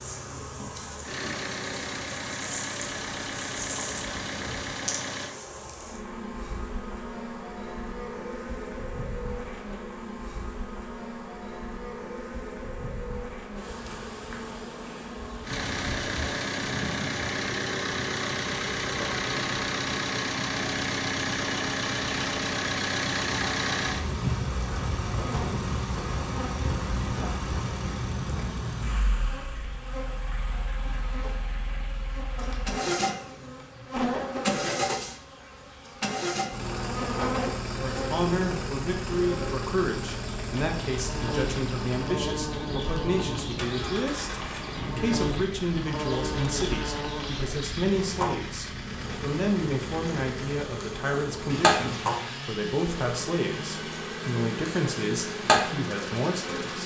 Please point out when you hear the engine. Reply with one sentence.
The engine can be heard from 0.0 to 5.3 s and from 15.4 to 56.8 s.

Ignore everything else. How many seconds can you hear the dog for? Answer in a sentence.
You can't hear the dog here.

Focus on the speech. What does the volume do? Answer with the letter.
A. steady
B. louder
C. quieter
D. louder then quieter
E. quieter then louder
A.